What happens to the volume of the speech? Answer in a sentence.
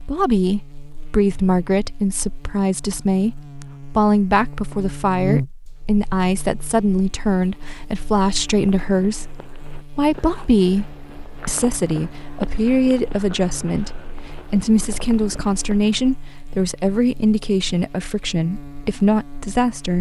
The loudness of the speech stays about the same.